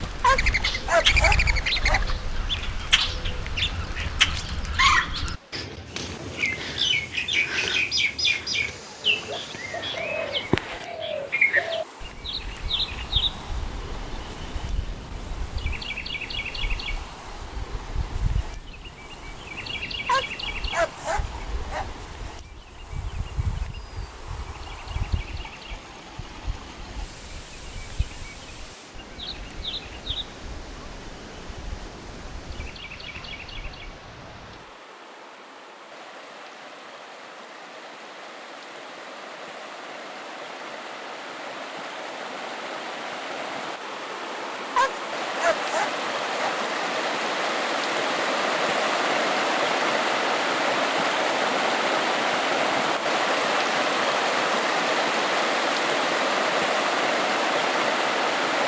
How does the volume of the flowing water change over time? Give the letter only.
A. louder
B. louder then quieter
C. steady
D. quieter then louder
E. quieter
A.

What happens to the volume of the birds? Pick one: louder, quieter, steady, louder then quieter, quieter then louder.
quieter.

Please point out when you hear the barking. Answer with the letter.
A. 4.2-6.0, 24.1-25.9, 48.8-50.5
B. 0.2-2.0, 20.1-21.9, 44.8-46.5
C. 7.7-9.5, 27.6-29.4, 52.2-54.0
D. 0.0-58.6
B.